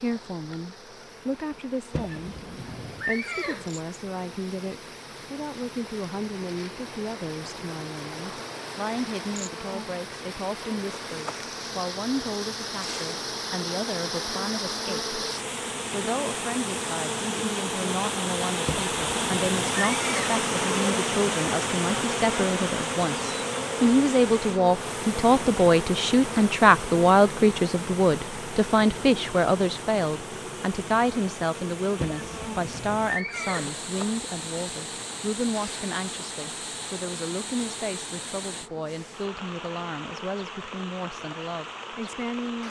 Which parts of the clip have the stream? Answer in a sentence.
You can hear the stream from 0.0 to 42.6 s.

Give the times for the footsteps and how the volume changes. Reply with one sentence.
You can't hear the footsteps here.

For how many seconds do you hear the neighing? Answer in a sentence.
You can hear the neighing for 5 seconds altogether.